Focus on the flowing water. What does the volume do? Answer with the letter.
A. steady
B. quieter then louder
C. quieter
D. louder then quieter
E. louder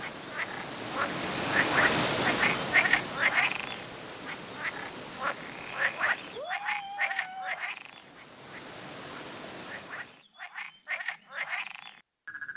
C.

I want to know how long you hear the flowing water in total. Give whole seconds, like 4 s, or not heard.
10 s.